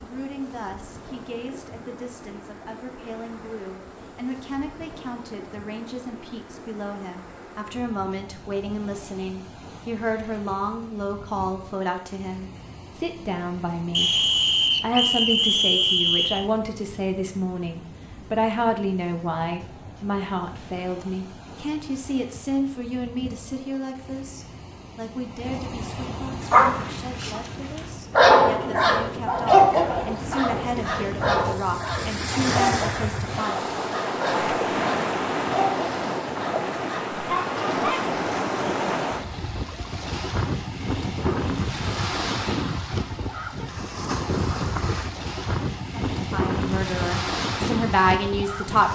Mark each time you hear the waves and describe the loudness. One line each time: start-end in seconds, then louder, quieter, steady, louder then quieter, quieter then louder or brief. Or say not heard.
0.0-48.9 louder.